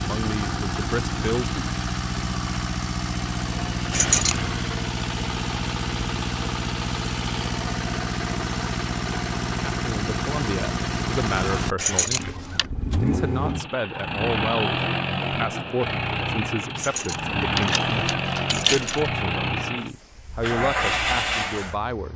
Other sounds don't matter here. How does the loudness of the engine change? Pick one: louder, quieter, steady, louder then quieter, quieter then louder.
steady.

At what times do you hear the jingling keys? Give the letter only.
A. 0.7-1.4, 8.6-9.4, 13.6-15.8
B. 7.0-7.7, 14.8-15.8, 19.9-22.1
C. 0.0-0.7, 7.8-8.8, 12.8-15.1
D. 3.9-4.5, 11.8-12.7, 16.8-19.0
D.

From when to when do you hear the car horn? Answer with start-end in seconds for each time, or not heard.
not heard.